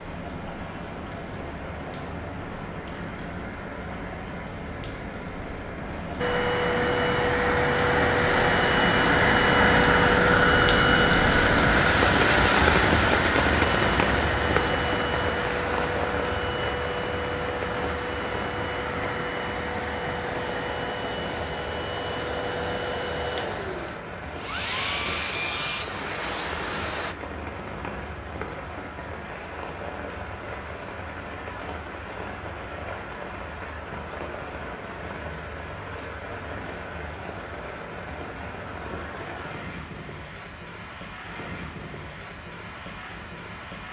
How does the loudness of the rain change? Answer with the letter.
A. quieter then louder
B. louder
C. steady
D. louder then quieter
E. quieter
D.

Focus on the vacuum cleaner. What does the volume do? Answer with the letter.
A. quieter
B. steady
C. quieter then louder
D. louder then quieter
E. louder
A.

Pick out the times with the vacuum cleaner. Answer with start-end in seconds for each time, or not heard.
6.2-27.1.